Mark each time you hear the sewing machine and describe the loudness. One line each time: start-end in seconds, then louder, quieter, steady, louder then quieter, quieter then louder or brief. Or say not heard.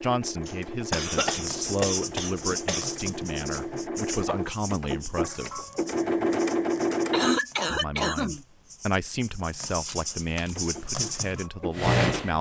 0.0-7.4 louder
10.6-12.3 brief.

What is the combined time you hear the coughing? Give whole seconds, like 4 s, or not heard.
4 s.